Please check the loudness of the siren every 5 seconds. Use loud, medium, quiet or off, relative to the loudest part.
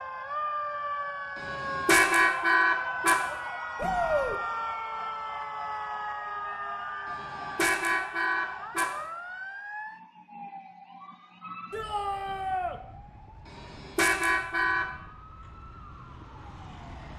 loud, loud, quiet, quiet.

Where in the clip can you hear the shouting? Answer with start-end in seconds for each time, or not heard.
3.8-4.4, 11.7-12.8.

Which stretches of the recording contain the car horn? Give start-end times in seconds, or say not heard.
1.4-3.4, 7.0-9.1, 13.4-14.8.